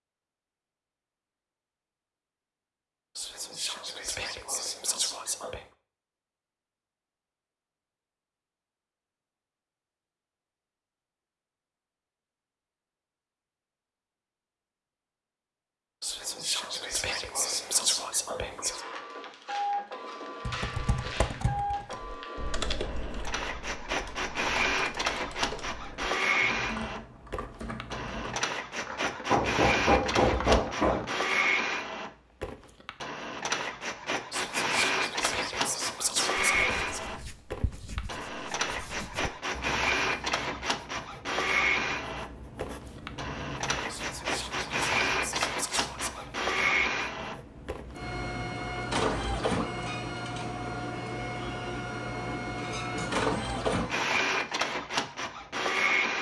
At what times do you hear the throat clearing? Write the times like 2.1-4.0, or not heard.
not heard.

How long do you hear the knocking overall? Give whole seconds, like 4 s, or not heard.
2 s.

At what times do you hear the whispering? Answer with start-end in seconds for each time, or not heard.
3.1-5.7, 16.0-18.9, 34.3-37.0, 43.9-46.4.